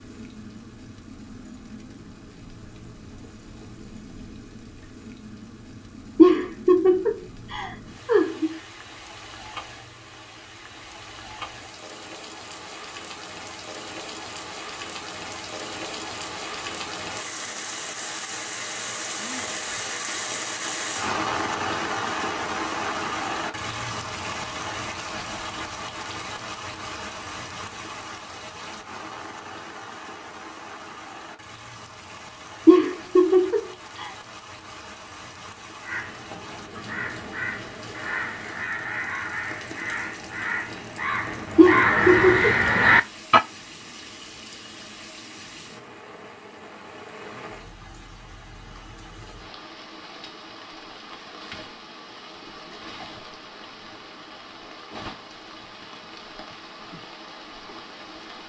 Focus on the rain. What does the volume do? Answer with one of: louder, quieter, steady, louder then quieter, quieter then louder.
louder then quieter.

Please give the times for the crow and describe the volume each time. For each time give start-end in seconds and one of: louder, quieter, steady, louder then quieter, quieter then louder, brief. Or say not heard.
35.9-43.4 louder.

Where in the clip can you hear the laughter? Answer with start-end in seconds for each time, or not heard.
6.2-8.5, 32.6-34.1, 41.5-42.6.